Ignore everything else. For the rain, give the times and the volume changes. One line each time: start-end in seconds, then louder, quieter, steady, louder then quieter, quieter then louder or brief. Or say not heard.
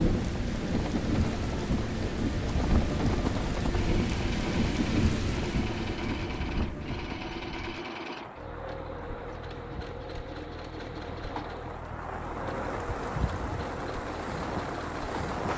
0.0-15.5 quieter then louder.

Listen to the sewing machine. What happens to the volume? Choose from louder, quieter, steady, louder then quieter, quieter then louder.
steady.